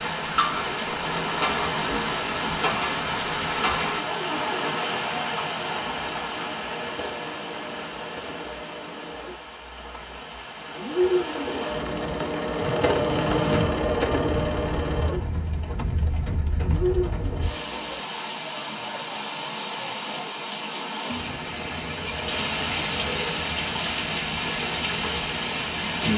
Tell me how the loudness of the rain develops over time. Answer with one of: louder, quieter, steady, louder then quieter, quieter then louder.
quieter then louder.